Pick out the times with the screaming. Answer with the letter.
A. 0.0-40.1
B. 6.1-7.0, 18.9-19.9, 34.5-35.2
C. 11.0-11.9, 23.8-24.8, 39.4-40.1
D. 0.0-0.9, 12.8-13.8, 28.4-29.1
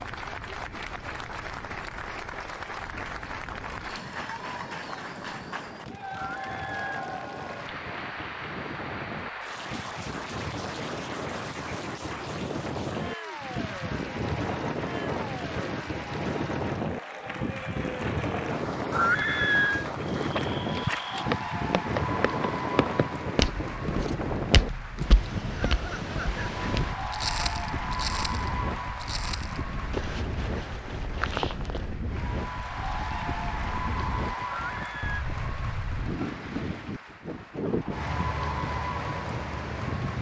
B.